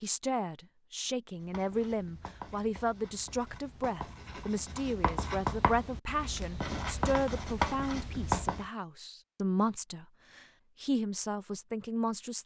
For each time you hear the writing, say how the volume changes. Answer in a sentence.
The writing can be heard from 1.4 to 8.7 s, getting louder.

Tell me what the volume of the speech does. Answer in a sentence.
The volume of the speech stays about the same.